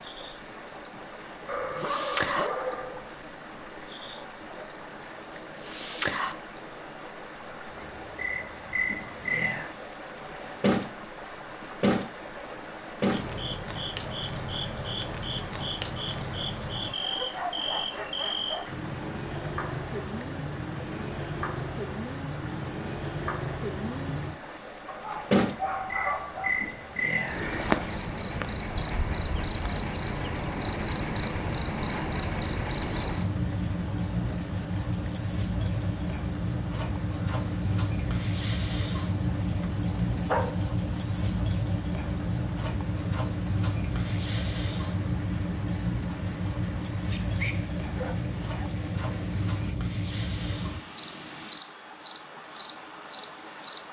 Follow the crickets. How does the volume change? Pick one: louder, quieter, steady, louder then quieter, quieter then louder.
steady.